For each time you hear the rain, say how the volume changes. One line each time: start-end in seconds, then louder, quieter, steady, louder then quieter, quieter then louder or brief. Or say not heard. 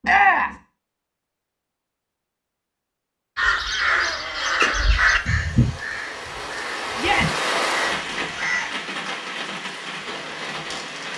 5.0-11.1 louder then quieter.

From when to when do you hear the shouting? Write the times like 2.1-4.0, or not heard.
0.0-0.6, 7.0-7.4.